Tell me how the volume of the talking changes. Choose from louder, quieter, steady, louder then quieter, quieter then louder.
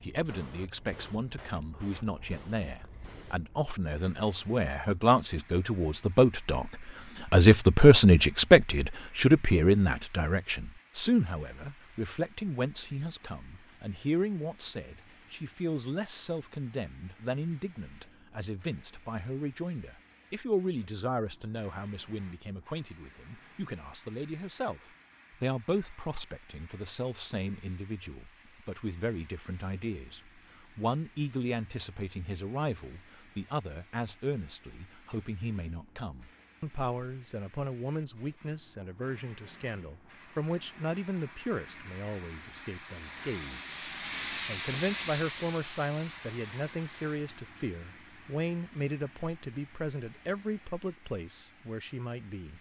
quieter.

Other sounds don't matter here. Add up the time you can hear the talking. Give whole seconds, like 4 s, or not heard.
52 s.